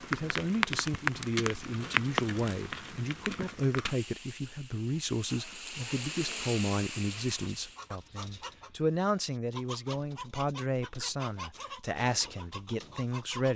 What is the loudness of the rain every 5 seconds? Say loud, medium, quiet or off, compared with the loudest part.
loud, medium, off.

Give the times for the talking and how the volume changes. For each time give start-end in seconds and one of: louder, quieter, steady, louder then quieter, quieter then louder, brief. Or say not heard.
0.0-13.5 steady.